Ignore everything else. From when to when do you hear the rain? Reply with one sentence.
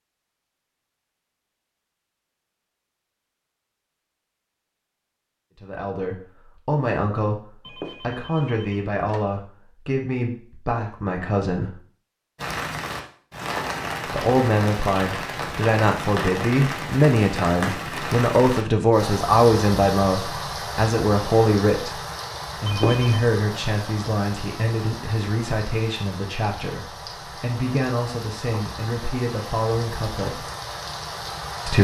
The rain can be heard from 12.3 to 31.7 s.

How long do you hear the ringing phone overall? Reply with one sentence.
You can hear the ringing phone for 2 seconds altogether.